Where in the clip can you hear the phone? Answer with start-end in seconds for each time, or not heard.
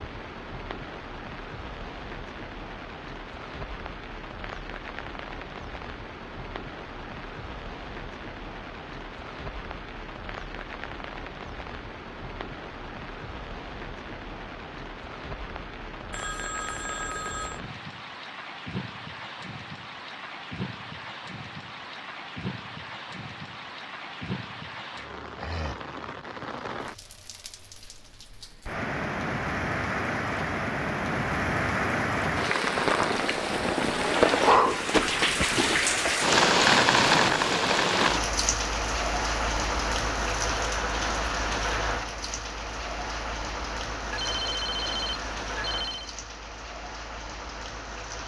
16.1-17.6, 44.1-46.1.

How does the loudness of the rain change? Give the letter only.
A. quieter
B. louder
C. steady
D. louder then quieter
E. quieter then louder
D.